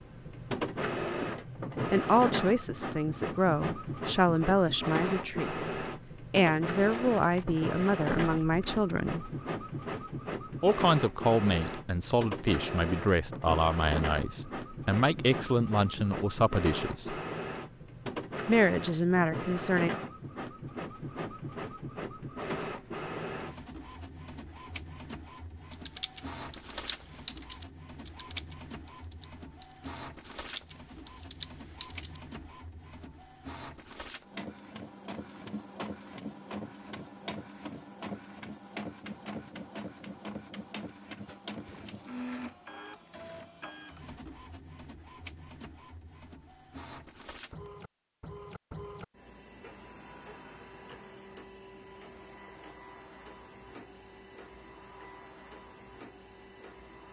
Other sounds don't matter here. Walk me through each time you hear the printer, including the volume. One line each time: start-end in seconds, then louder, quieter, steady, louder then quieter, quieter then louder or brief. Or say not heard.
0.0-57.0 quieter.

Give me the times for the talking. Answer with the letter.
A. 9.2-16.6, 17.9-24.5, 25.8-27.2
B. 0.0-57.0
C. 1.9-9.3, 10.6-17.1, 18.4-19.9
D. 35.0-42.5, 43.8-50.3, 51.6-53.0
C.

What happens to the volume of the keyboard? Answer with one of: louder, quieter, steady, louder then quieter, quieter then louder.
quieter then louder.